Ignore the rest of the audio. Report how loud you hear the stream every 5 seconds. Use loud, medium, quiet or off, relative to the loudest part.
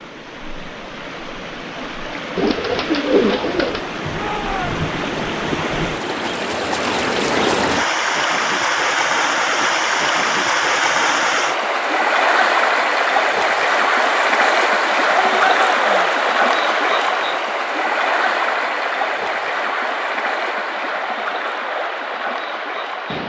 medium, loud, loud, loud, medium.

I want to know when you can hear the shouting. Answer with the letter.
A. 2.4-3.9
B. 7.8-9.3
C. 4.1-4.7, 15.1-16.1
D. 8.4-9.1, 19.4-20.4
C.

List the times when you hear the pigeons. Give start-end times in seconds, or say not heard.
2.4-3.9.